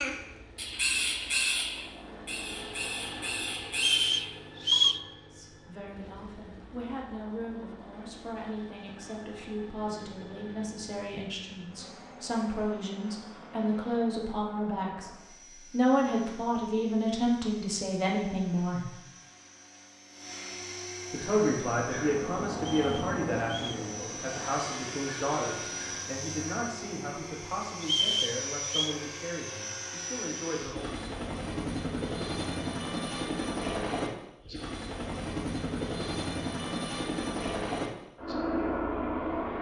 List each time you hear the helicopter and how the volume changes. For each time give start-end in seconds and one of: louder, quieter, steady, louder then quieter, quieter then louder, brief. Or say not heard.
0.0-39.5 louder.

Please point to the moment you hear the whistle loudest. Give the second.
5 s.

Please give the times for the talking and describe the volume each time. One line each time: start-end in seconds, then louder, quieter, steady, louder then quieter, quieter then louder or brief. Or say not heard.
5.3-18.9 louder
21.1-30.9 quieter.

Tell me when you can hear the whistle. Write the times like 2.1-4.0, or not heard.
3.8-5.0, 22.6-23.8, 27.8-28.9.